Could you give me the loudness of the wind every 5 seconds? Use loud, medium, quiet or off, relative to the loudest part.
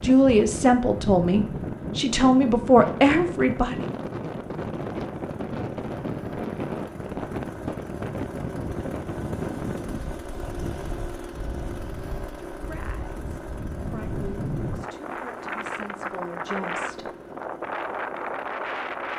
loud, loud, medium, loud.